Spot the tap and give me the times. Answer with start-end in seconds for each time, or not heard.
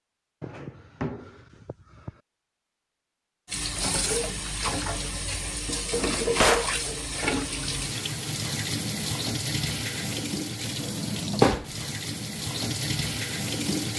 3.5-13.9.